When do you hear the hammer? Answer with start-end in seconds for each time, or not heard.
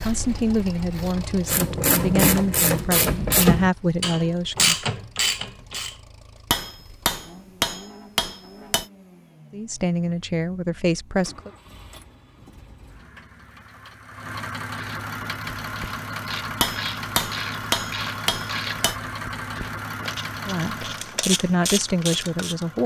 6.5-8.8, 16.6-18.9.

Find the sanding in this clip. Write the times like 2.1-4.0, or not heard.
not heard.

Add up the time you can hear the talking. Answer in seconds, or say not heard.
9 s.